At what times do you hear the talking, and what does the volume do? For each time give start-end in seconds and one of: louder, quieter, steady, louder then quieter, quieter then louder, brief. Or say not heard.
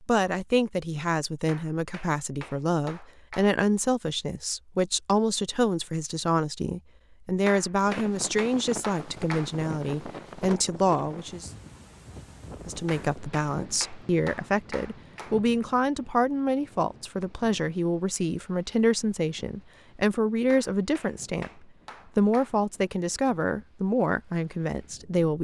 0.0-11.5 steady
12.7-25.3 steady.